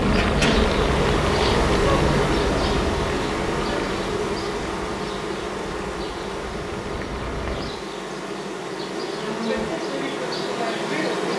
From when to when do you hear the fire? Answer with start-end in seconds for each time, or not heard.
0.0-7.8.